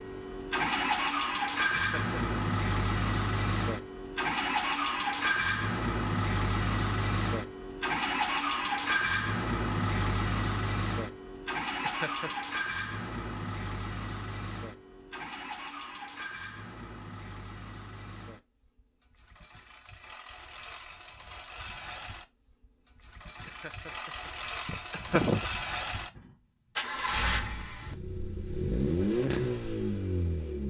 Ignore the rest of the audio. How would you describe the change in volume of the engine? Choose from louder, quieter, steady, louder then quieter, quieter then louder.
quieter then louder.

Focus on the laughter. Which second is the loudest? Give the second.
25 s.